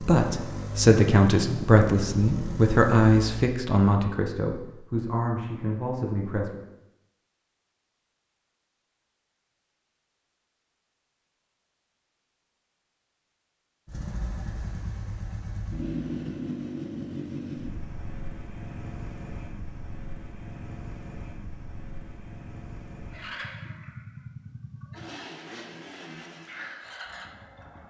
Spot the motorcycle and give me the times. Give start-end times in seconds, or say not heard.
0.0-3.5, 13.8-27.8.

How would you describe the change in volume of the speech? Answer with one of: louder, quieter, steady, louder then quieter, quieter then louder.
quieter.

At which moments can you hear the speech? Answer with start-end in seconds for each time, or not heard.
0.0-6.6.